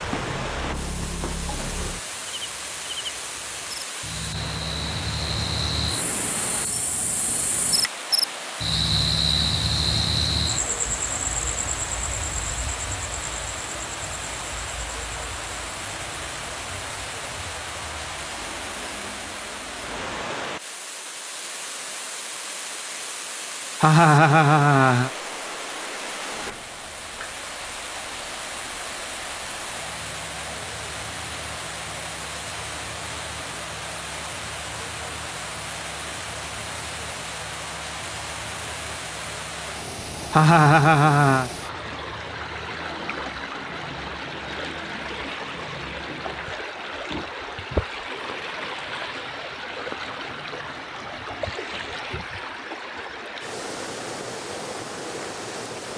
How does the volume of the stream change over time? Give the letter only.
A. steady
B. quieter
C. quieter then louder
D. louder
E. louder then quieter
A.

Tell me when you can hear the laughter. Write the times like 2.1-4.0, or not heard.
23.8-25.1, 40.3-41.5.